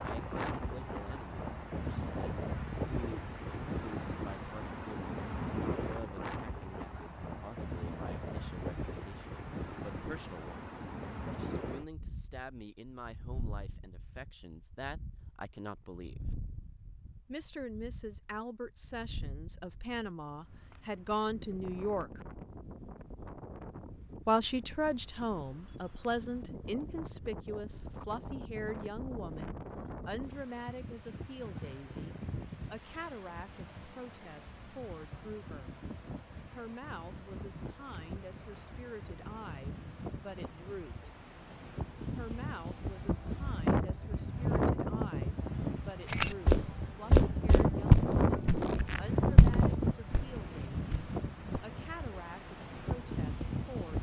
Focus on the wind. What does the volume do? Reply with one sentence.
The volume of the wind goes down, then up.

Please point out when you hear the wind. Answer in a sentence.
The wind can be heard from 0.0 to 53.9 s.